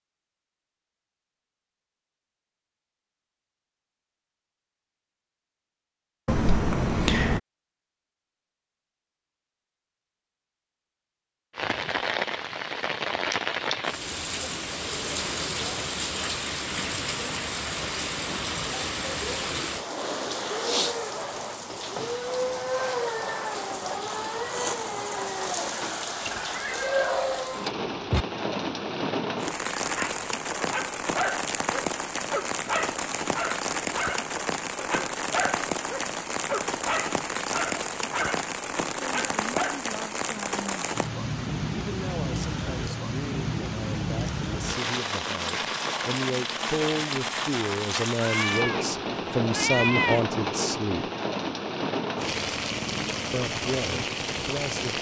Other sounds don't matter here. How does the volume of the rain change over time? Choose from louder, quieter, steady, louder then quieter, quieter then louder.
steady.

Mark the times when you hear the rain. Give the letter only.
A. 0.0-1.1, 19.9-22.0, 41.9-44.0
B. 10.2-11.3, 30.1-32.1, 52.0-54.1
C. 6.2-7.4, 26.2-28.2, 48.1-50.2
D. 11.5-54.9
D.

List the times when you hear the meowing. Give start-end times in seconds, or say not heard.
6.2-7.4, 26.2-28.2, 48.1-50.2.